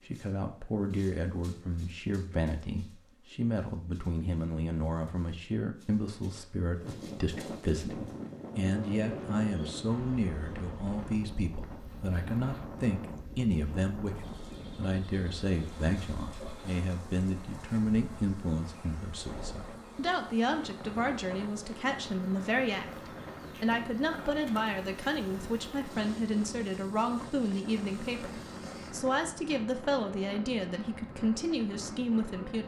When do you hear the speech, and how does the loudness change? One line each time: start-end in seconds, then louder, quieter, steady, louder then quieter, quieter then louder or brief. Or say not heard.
0.1-32.6 steady.